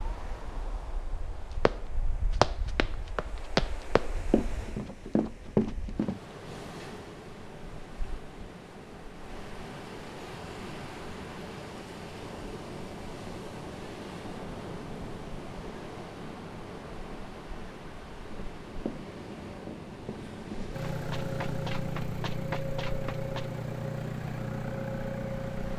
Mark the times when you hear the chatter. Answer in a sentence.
The chatter can't be heard in this clip.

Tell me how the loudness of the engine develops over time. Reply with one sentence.
The volume of the engine stays about the same.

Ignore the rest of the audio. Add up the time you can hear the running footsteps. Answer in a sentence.
You can hear the running footsteps for 10 seconds altogether.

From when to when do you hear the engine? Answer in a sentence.
The engine can be heard from 20.7 to 25.7 s.